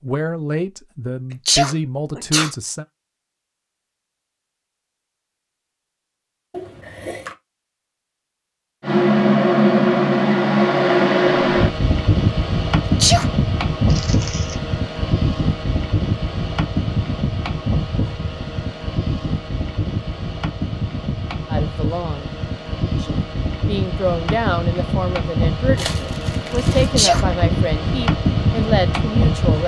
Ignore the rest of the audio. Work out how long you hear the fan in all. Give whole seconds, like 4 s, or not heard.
21 s.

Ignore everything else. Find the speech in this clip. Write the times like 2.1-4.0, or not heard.
0.0-2.9, 21.4-22.3, 22.9-29.6.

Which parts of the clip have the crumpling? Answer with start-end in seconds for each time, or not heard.
6.5-7.3, 13.8-14.6, 25.8-26.9.